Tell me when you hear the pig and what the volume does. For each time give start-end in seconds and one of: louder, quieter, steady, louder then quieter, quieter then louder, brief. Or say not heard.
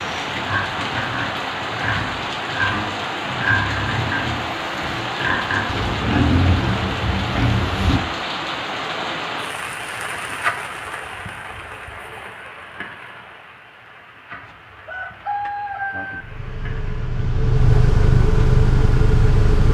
0.2-8.0 louder.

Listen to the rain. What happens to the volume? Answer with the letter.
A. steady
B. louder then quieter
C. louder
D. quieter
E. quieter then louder
D.